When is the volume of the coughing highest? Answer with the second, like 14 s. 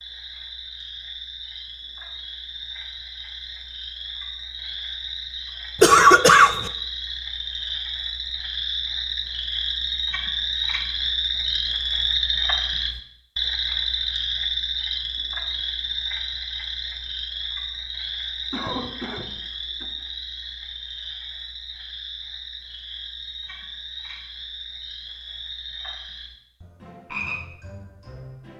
6 s.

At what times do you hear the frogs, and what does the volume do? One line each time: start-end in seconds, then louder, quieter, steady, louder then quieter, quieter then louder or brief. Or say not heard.
0.0-28.5 louder then quieter.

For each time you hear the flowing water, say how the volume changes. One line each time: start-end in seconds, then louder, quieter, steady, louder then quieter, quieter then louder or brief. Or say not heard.
not heard.